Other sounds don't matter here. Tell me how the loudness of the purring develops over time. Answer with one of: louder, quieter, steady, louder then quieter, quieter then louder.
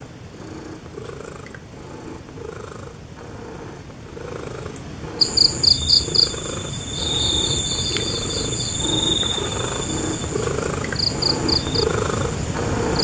louder.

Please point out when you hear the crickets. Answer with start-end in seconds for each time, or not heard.
5.2-12.9.